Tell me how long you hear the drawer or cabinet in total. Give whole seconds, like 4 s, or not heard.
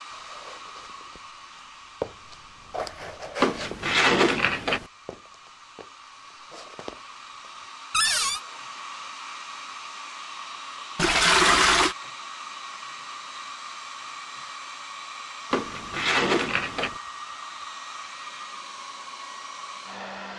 3 s.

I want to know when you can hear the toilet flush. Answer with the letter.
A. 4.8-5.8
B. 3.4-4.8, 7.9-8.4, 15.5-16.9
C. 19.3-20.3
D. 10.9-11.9
D.